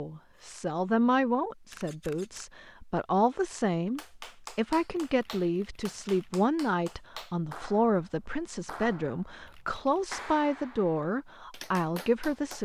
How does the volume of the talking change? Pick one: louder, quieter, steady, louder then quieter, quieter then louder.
steady.